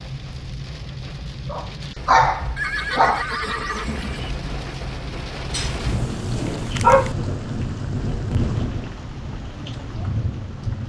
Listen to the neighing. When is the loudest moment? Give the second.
3 s.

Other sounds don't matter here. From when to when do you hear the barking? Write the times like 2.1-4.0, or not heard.
1.5-3.2, 5.5-7.2.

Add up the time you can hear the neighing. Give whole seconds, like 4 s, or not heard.
2 s.